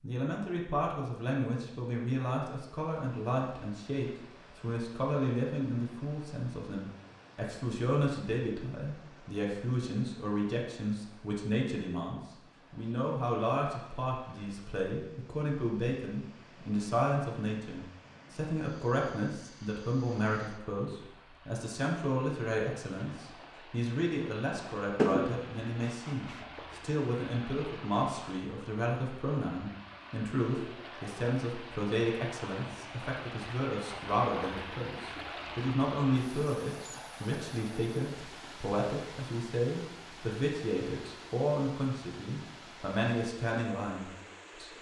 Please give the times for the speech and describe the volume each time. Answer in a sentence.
You can hear the speech from 0.0 to 44.7 s, at a steady volume.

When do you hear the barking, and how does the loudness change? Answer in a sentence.
You can't hear the barking here.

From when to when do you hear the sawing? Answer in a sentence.
You can hear the sawing from 24.9 to 26.4 s.